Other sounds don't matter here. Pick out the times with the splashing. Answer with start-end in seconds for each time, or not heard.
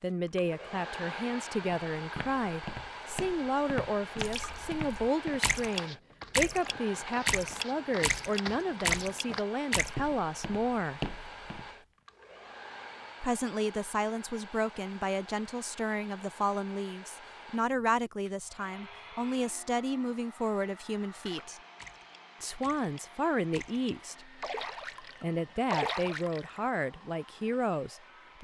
4.2-9.9, 21.2-26.6.